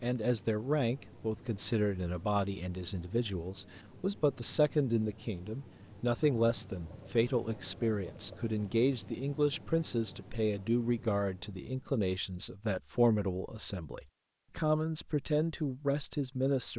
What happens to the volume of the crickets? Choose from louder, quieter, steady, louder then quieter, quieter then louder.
steady.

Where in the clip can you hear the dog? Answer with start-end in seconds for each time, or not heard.
not heard.